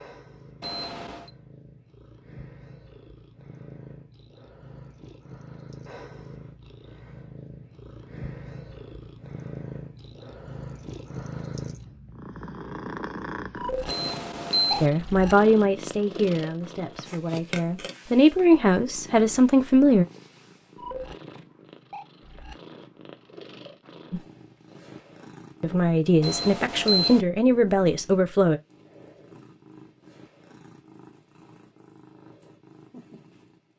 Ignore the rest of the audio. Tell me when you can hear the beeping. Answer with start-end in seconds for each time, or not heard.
0.6-1.3, 13.8-14.9, 26.2-27.2.